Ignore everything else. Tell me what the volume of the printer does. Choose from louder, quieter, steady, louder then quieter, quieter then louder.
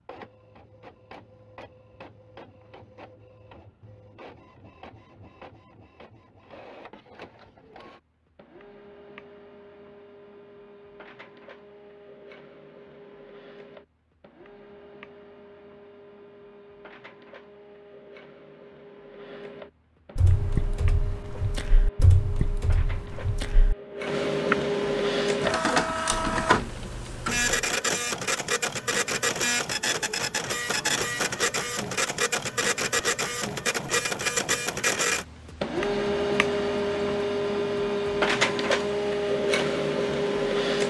louder.